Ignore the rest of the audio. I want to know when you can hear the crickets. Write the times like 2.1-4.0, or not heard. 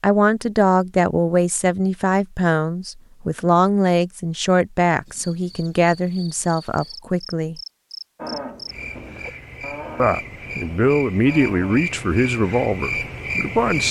5.0-13.8.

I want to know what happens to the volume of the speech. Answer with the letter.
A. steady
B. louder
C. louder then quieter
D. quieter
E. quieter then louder
A.